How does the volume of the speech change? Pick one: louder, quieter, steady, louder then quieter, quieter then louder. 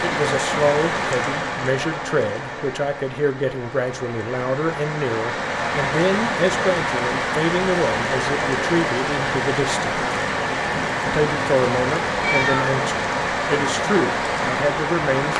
steady.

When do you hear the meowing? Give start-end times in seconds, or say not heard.
12.1-12.8.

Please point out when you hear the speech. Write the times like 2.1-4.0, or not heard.
0.0-10.1, 11.1-15.3.